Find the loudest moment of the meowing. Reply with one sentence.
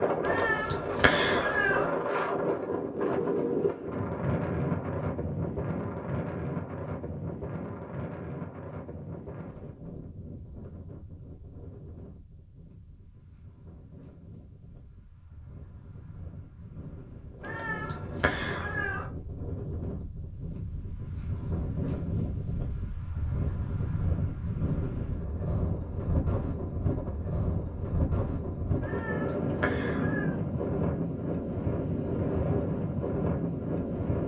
The volume of the meowing peaks at 1 second.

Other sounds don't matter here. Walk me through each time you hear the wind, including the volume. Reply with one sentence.
You can hear the wind from 0.0 to 34.2 s, getting quieter then louder.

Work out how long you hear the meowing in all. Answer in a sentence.
You can hear the meowing for 5 seconds altogether.